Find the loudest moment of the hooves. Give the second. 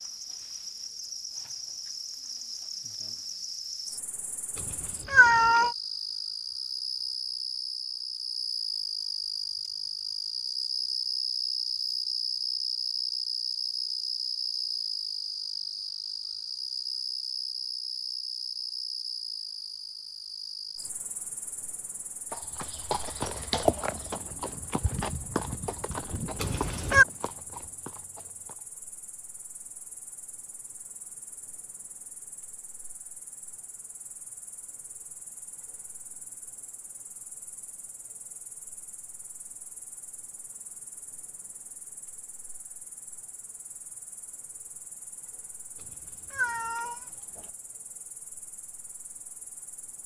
24 s.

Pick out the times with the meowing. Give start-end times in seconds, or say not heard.
4.6-5.8, 26.4-27.1, 45.9-47.5.